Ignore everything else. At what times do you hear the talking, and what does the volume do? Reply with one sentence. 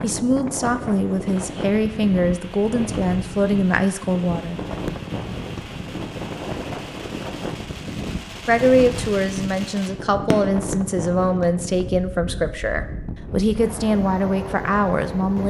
You can hear the talking from 0.0 to 4.6 s, at a steady volume; and from 8.4 to 15.4 s, at a steady volume.